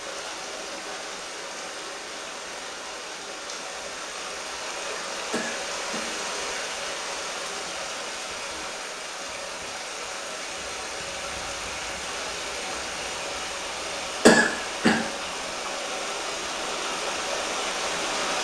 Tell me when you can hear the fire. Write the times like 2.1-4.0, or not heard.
not heard.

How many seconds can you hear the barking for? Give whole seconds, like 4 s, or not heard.
not heard.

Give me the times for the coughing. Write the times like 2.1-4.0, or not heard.
5.3-6.0, 14.2-15.0.